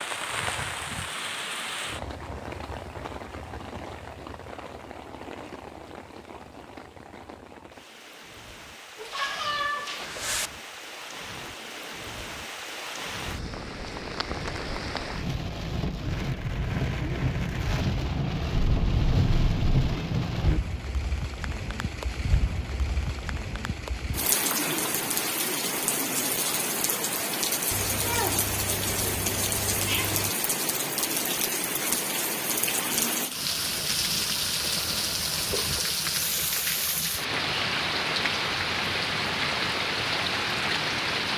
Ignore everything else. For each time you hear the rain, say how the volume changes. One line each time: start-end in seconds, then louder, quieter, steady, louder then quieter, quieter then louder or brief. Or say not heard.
0.0-41.3 louder.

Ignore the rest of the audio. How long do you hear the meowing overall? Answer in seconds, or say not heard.
6 s.